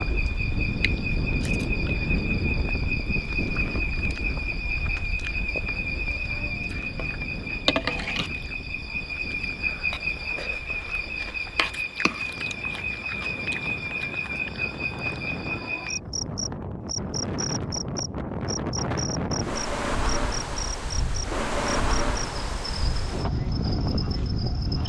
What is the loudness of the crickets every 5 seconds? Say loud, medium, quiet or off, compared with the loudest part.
loud, loud, loud, loud, medium.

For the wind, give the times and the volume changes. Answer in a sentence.
The wind can be heard from 0.0 to 24.8 s, getting quieter then louder.